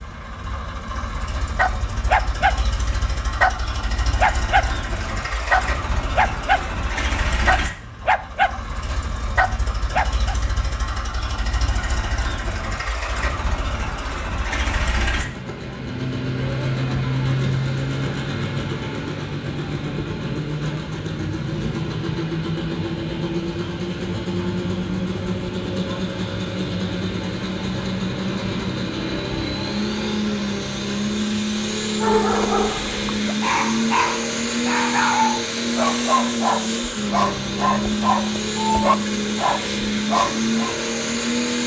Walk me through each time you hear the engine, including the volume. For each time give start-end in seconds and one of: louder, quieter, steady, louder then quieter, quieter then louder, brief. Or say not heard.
0.0-41.6 louder.